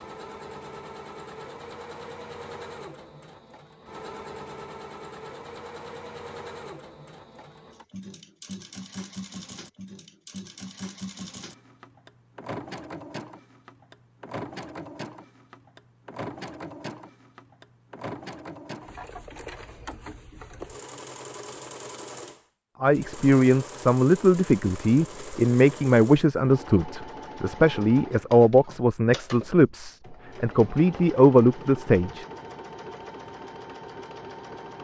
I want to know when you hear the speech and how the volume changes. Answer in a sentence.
The speech can be heard from 22.8 to 32.2 s, at a steady volume.